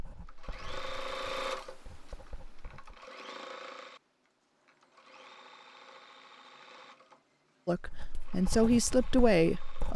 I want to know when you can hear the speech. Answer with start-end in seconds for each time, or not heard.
7.7-9.9.